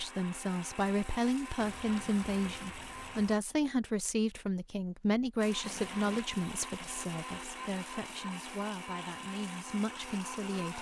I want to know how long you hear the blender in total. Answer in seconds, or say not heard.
9 s.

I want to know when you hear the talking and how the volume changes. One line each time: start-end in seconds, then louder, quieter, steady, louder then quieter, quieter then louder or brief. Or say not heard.
0.0-10.7 quieter.